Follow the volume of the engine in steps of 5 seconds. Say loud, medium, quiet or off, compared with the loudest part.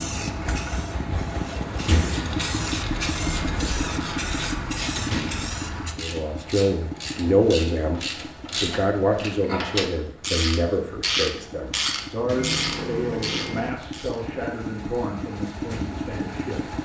loud, medium, medium, loud.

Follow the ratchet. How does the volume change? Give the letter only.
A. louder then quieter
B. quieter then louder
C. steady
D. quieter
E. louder
E.